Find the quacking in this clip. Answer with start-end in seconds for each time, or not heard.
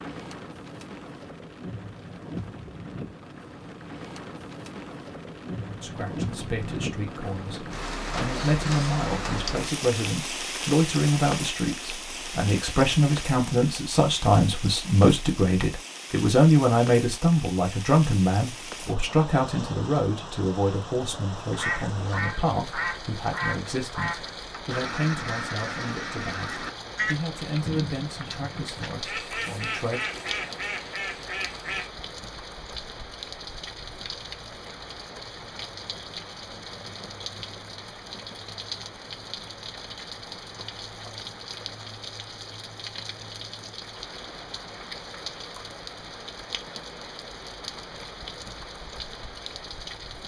21.5-31.9.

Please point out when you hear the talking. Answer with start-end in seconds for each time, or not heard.
5.8-30.0.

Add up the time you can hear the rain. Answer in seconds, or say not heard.
50 s.